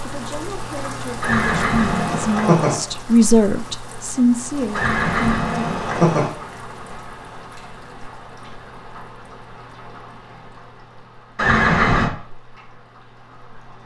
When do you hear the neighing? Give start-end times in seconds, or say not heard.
1.2-2.8, 4.7-6.3, 11.3-12.1.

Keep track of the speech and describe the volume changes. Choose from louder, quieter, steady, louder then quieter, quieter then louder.
louder then quieter.